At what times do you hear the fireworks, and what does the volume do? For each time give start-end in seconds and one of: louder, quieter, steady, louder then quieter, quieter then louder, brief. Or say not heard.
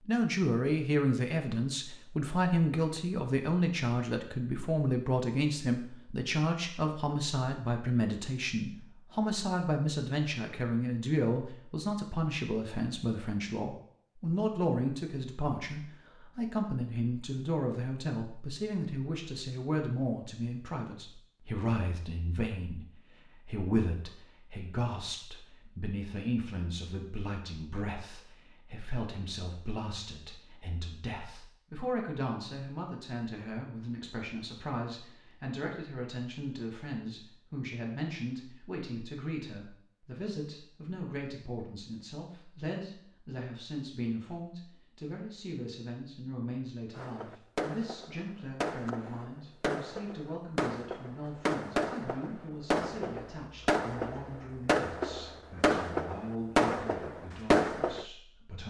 47.0-58.0 louder.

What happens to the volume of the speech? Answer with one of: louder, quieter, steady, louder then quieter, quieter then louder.
quieter.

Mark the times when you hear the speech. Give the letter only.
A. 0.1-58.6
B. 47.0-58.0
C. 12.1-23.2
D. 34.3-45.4
A.